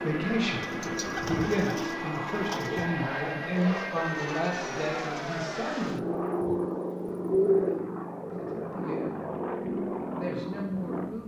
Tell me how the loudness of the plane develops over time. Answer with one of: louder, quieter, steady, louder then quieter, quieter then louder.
steady.